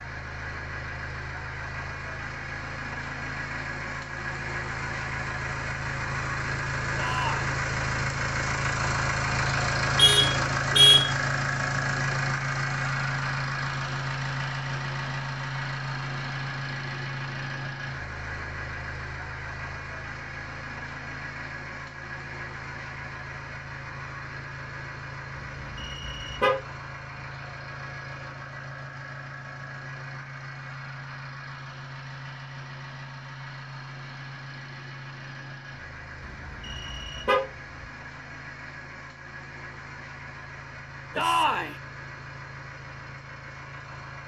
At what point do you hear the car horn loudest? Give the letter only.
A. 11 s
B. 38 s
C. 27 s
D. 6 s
A.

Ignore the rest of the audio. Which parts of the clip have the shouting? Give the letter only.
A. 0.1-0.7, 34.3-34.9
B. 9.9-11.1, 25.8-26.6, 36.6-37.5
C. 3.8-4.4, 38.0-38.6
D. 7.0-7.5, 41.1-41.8
D.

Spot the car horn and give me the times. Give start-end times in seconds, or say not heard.
9.9-11.1, 25.8-26.6, 36.6-37.5.